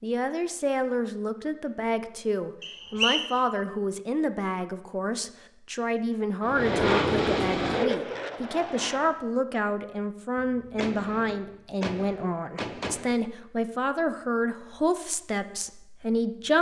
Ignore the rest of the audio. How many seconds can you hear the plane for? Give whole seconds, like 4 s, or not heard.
3 s.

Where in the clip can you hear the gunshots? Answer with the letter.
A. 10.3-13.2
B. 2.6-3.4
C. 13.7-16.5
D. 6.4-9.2
A.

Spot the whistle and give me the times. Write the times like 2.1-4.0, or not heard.
2.6-3.4.